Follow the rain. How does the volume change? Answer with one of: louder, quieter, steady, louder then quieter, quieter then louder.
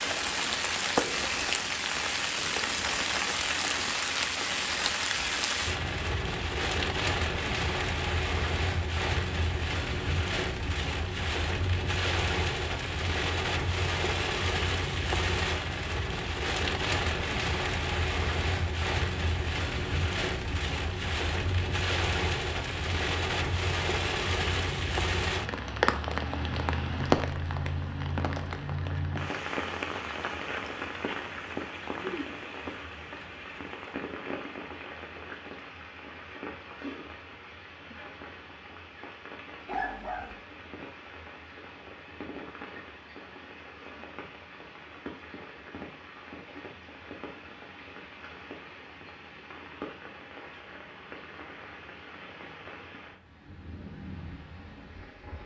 quieter.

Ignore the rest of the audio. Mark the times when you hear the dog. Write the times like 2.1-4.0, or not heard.
39.6-40.4.